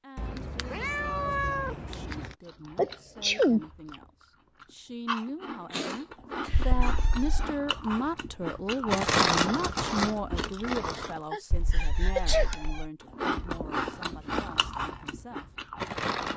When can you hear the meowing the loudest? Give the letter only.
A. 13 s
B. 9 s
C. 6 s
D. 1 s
D.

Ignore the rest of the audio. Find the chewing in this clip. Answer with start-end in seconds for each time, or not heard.
2.4-11.2, 13.0-16.3.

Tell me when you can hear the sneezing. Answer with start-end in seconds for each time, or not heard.
2.8-3.6, 5.7-6.8, 10.9-12.7.